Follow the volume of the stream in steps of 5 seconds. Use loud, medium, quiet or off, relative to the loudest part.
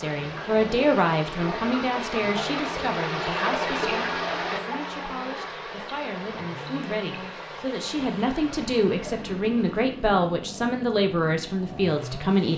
loud, medium, off.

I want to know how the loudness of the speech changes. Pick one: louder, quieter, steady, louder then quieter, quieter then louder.
quieter then louder.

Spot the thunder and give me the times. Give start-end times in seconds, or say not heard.
not heard.